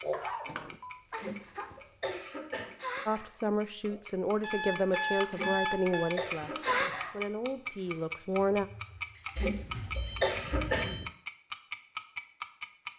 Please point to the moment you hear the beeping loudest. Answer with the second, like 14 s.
6 s.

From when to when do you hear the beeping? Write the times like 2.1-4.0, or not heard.
0.1-1.0, 4.4-6.2, 9.3-11.1.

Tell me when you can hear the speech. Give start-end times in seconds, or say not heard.
3.0-8.7.